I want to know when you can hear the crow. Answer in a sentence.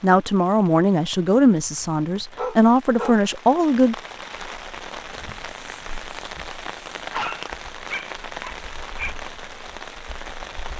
You can't hear the crow here.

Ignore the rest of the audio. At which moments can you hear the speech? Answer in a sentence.
The speech can be heard from 0.0 to 4.0 s.